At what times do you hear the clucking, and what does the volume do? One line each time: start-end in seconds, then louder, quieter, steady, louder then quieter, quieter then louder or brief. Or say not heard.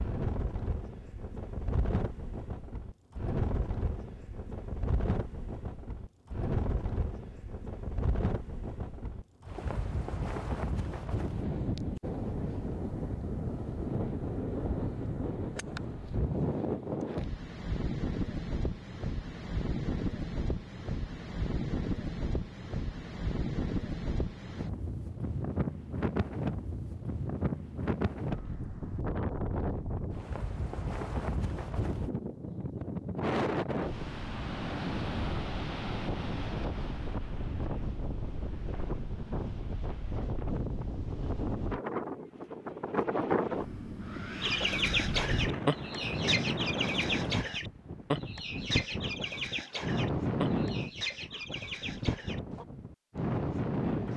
44.4-52.6 quieter.